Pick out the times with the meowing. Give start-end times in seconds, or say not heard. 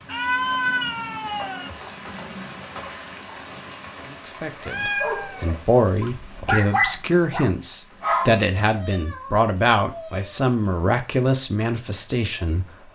0.1-1.7, 4.6-6.6, 8.6-10.3.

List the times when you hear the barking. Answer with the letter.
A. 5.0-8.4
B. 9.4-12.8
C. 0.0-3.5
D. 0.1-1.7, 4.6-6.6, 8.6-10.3
A.